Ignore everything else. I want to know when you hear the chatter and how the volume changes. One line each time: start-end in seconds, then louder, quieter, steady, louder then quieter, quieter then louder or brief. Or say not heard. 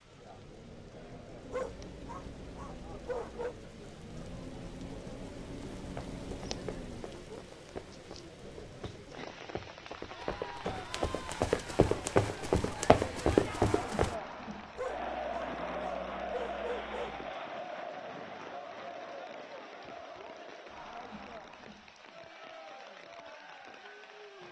0.0-24.4 louder then quieter.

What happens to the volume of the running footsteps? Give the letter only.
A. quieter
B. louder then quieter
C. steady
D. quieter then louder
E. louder
E.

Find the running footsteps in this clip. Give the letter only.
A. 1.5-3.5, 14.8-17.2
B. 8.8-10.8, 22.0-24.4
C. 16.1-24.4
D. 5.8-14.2
D.